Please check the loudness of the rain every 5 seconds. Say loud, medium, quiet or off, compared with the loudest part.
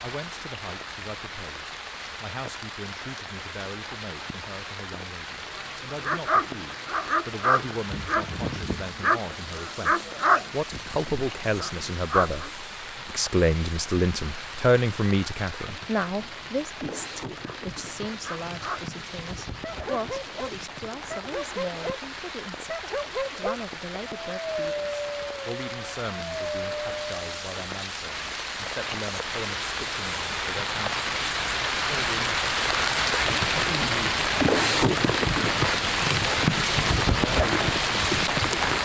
quiet, quiet, quiet, quiet, quiet, medium, loud, loud.